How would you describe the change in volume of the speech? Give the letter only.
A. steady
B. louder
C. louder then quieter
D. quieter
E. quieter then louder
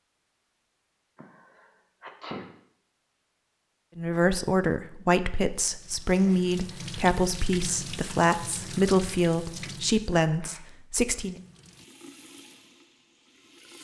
A.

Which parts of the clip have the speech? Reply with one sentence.
The speech can be heard from 4.0 to 11.4 s.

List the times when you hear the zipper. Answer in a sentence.
You can't hear the zipper here.